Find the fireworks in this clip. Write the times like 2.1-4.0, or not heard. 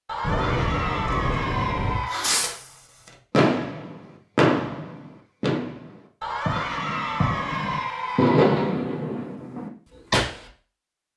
0.2-2.7, 3.3-10.4.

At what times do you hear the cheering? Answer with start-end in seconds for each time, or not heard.
0.1-2.2, 6.2-8.8.